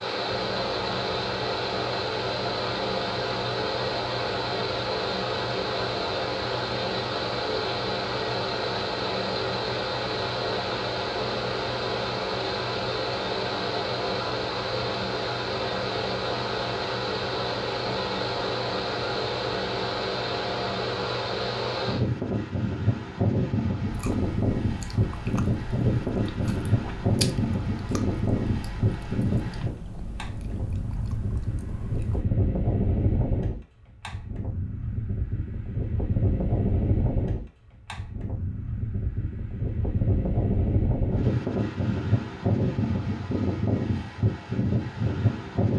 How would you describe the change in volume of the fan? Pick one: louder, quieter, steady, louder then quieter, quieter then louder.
steady.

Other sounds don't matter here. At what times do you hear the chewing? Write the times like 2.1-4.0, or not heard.
23.9-32.3.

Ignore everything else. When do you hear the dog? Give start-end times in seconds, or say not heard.
not heard.